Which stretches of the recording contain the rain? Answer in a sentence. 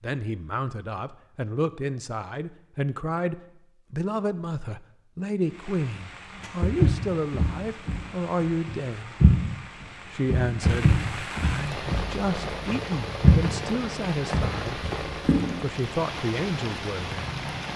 You can hear the rain from 5.4 to 17.7 s.